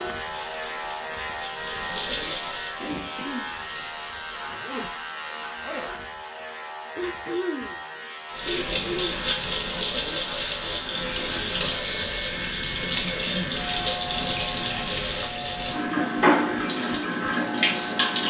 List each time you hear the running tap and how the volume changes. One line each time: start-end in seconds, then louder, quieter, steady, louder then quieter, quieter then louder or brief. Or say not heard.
0.0-4.5 louder then quieter
8.2-18.2 steady.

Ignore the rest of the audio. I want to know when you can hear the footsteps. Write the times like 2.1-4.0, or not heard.
not heard.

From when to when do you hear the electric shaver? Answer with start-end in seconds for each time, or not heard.
0.0-18.2.